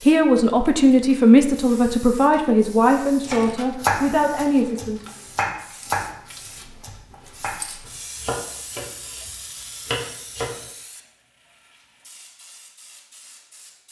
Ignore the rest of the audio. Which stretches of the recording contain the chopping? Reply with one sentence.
The chopping can be heard from 3.2 to 10.6 s.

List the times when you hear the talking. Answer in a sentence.
The talking can be heard from 0.0 to 5.0 s.